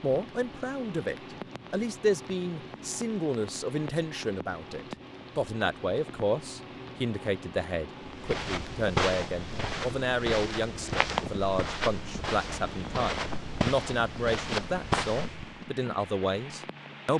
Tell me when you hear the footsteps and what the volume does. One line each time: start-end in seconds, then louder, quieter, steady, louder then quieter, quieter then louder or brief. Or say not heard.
8.0-15.7 steady.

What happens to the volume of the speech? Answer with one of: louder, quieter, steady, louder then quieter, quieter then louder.
steady.